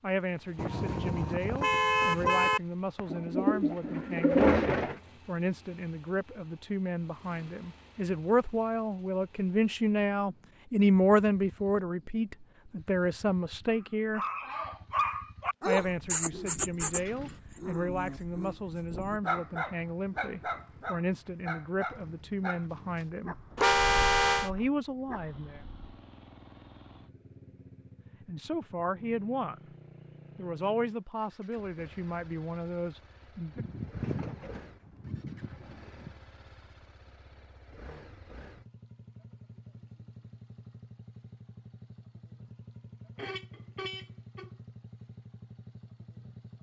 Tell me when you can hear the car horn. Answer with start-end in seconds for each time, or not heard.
0.6-2.6, 23.6-24.5, 43.1-44.5.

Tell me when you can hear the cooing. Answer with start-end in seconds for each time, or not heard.
3.0-5.0, 33.5-36.1.